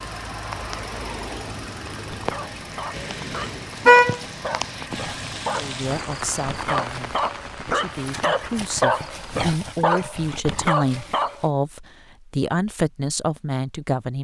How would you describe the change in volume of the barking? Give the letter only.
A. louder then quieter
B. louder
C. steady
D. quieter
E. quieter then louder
B.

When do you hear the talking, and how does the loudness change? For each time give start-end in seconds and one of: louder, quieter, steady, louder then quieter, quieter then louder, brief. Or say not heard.
5.5-14.1 louder.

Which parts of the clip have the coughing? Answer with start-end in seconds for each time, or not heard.
not heard.